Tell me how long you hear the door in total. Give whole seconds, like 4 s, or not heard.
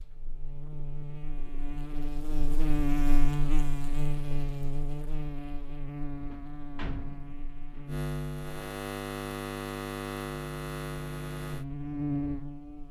2 s.